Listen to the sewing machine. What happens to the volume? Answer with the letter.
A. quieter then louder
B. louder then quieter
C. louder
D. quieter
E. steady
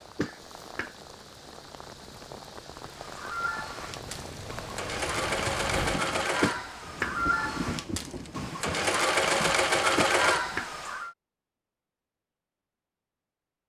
C.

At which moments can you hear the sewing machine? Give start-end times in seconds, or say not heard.
2.8-11.1.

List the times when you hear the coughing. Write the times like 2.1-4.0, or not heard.
0.1-0.9, 6.4-7.2, 9.9-10.7.